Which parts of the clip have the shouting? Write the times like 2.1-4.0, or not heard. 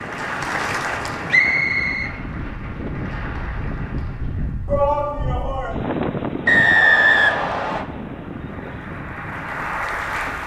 4.7-5.8.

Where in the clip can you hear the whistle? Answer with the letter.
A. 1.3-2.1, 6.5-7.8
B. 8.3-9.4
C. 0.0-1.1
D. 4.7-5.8
A.